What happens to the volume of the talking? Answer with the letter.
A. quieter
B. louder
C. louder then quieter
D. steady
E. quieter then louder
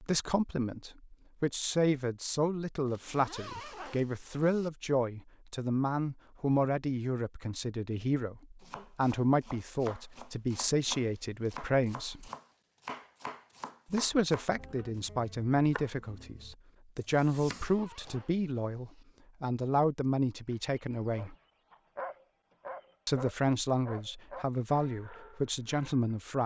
D.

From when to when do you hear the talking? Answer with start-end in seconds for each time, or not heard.
0.0-12.3, 13.9-21.4, 23.1-26.4.